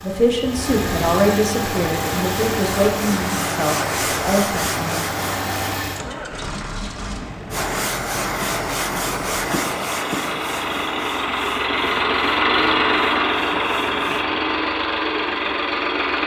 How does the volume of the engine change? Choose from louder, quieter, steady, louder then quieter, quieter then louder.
quieter then louder.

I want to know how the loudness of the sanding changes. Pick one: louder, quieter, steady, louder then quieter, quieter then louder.
quieter.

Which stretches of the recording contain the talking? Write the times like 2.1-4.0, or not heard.
0.0-5.0.